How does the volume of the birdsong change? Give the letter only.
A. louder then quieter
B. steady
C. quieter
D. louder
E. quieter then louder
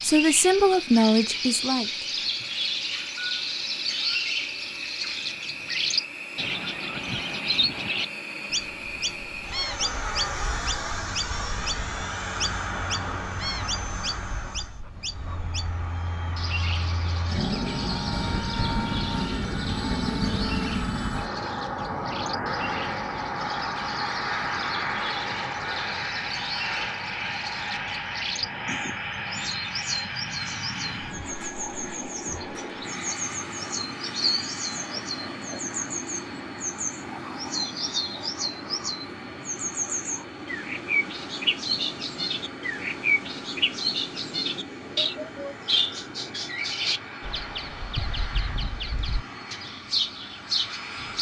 E.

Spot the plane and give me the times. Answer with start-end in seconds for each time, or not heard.
0.0-51.1.